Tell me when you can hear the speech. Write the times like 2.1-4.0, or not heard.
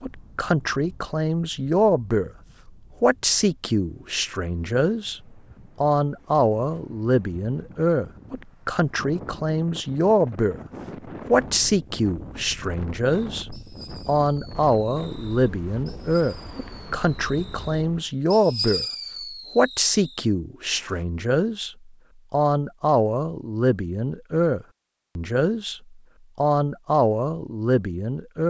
0.0-2.3, 3.0-5.2, 5.8-10.6, 11.3-18.9, 19.6-28.4.